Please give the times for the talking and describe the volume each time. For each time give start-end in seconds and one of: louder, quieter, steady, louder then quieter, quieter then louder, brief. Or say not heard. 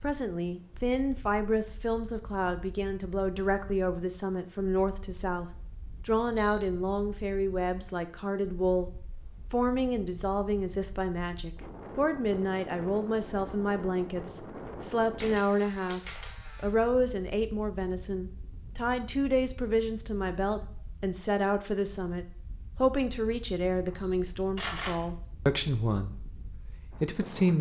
0.0-27.5 steady.